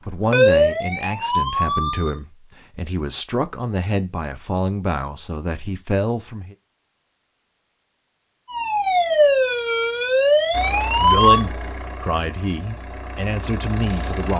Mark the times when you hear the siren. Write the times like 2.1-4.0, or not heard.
0.0-2.1, 8.5-11.4.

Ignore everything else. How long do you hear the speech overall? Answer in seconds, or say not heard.
10 s.